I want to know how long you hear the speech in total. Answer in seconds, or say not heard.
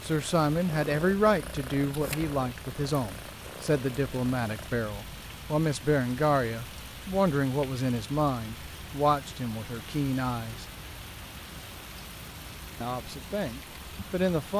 12 s.